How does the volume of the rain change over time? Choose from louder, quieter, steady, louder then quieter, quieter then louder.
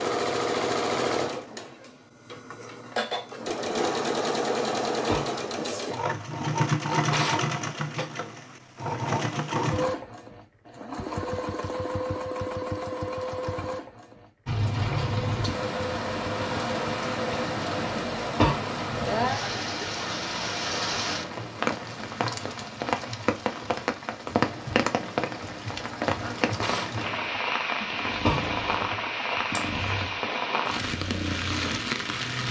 steady.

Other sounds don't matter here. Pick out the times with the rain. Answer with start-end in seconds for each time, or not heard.
14.4-32.4.